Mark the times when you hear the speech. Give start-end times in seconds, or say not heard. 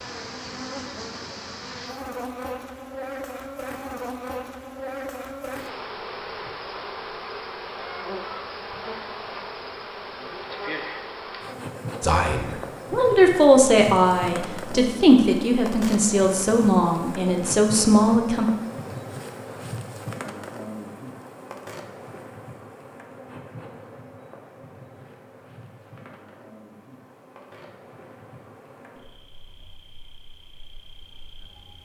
12.0-18.4.